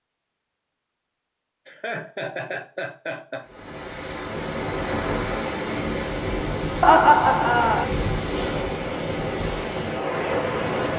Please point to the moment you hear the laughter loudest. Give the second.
7 s.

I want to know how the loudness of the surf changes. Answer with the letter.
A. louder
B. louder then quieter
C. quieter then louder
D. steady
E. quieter
D.